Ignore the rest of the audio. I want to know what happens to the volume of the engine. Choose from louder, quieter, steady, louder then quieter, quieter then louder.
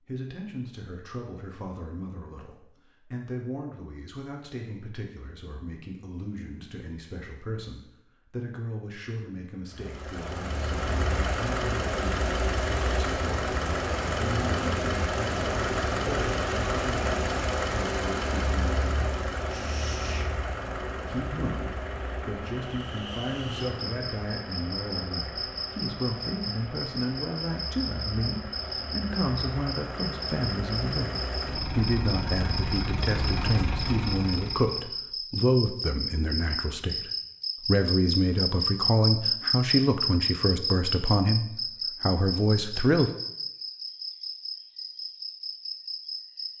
quieter then louder.